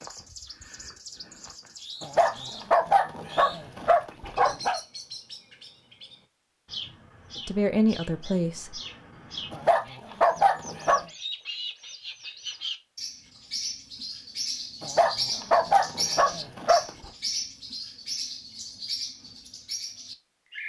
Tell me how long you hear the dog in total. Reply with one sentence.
You can hear the dog for 7 seconds altogether.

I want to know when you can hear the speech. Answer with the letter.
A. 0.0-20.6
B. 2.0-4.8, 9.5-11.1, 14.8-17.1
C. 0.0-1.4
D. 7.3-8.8
D.